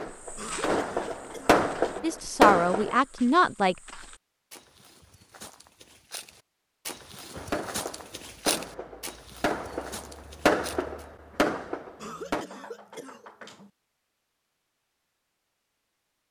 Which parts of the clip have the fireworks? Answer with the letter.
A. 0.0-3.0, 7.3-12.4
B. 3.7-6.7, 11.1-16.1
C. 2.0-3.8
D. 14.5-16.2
A.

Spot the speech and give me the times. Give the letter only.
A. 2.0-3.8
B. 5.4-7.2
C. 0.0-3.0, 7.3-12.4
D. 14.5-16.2
A.